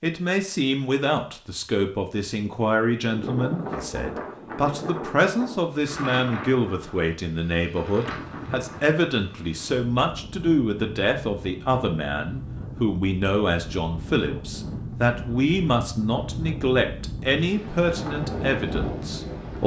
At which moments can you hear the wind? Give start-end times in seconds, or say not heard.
3.1-19.6.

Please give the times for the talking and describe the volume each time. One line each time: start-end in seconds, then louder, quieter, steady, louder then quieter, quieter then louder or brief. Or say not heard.
0.0-19.6 steady.